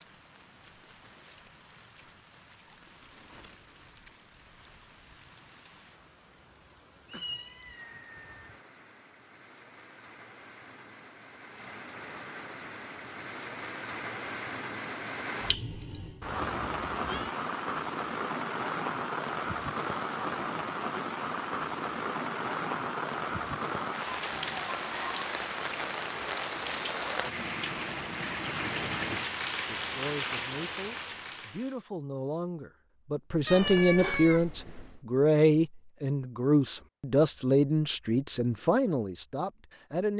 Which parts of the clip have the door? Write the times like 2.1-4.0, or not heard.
not heard.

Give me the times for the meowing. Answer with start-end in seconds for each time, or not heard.
7.0-8.6, 16.2-17.4, 33.5-35.0.